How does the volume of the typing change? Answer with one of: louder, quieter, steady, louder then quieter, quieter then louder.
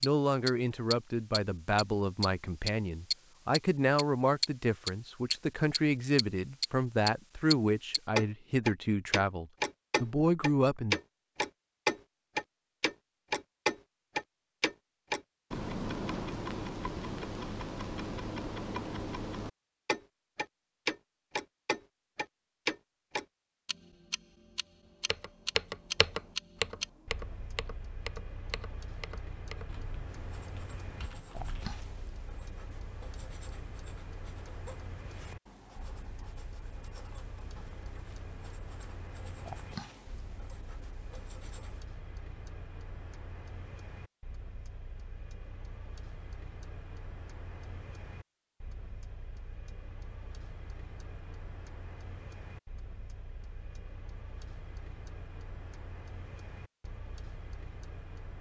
quieter.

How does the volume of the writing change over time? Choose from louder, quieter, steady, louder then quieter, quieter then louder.
quieter then louder.